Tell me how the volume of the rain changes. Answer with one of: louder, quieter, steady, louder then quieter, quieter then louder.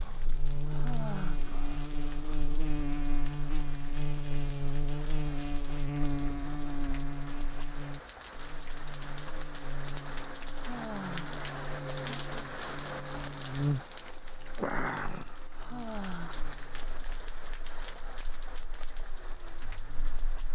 louder then quieter.